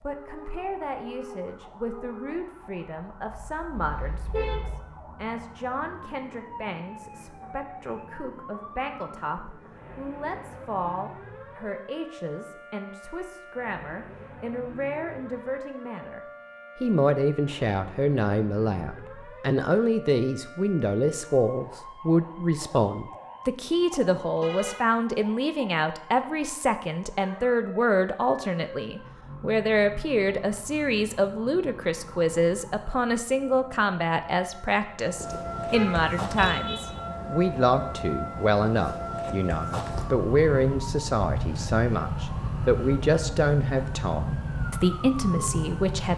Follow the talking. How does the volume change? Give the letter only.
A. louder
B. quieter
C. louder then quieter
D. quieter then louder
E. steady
A.